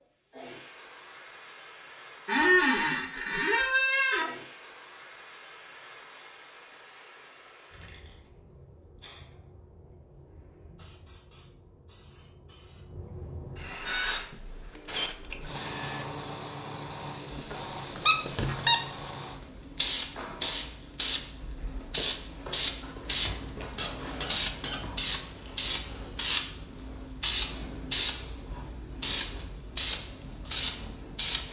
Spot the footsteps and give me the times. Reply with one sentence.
The footsteps can't be heard in this clip.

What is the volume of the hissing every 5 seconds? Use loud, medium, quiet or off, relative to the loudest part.
quiet, quiet, quiet, medium, loud, loud, loud.